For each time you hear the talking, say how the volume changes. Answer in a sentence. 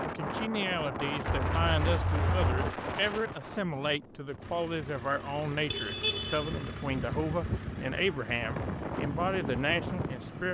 The talking can be heard from 0.0 to 10.4 s, at a steady volume.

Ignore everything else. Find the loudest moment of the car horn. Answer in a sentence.
The loudest moment of the car horn is at 6 seconds.